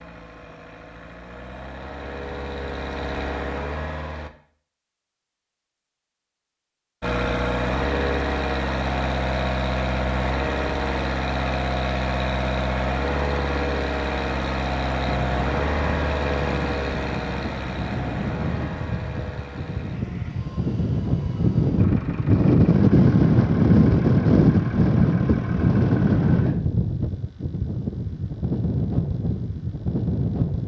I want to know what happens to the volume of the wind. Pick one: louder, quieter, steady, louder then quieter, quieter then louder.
louder then quieter.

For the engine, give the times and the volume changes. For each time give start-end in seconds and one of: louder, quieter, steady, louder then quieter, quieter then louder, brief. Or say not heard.
0.0-4.3 louder
7.0-26.6 quieter.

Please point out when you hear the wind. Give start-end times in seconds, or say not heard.
15.0-30.6.